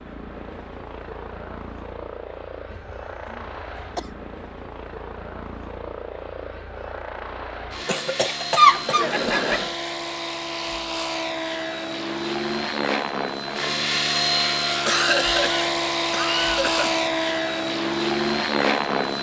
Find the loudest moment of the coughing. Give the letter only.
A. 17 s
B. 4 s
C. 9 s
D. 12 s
C.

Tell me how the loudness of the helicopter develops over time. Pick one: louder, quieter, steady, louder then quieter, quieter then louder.
louder.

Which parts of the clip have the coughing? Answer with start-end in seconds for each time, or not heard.
2.7-4.2, 7.8-9.7, 14.8-17.1.